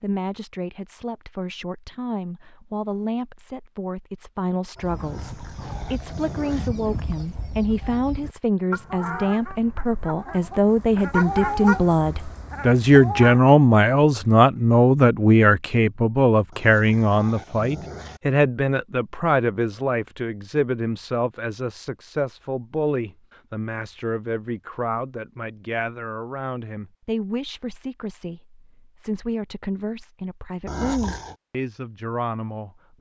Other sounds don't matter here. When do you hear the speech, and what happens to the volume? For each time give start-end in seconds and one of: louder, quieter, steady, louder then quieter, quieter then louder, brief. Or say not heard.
0.0-32.9 louder then quieter.